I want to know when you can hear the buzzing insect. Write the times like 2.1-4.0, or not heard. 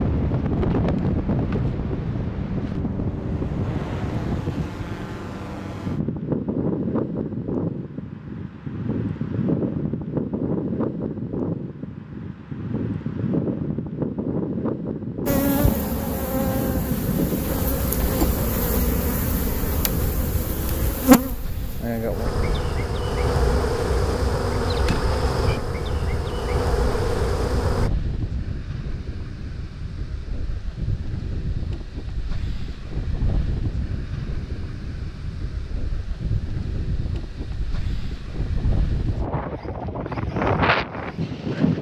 15.2-27.9.